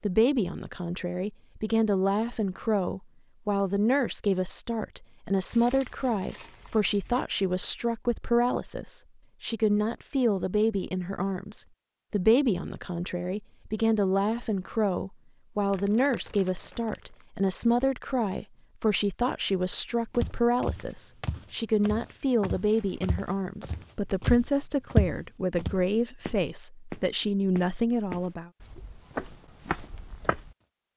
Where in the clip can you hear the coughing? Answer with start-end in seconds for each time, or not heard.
not heard.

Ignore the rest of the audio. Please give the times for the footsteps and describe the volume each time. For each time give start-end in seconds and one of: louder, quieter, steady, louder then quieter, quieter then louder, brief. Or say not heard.
20.1-30.6 louder then quieter.